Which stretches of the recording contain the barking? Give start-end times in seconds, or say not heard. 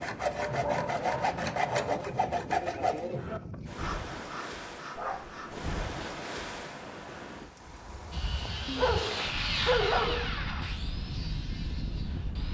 0.3-2.0, 5.0-5.5, 8.7-10.3.